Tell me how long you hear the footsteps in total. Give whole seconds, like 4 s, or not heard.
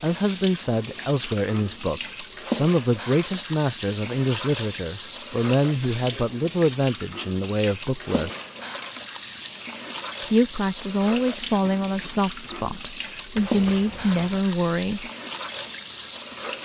not heard.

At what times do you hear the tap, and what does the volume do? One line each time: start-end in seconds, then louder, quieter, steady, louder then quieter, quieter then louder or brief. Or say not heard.
0.0-16.6 steady.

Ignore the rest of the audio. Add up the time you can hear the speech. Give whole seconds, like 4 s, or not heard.
13 s.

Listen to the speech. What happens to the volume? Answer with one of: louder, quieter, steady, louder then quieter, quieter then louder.
steady.